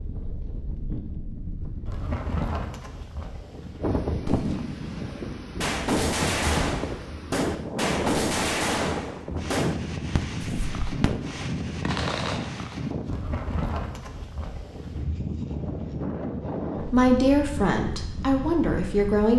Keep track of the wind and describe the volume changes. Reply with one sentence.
The volume of the wind stays about the same.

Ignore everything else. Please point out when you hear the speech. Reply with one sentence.
The speech can be heard from 16.8 to 19.3 s.